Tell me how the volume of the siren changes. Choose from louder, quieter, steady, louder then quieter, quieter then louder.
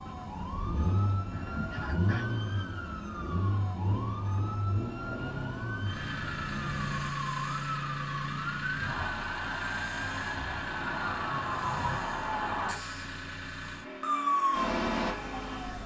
louder.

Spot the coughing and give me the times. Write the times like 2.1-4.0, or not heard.
1.3-2.2.